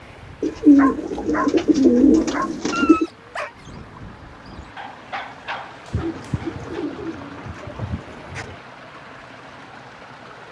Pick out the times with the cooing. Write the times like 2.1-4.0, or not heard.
0.4-3.0, 5.9-8.6.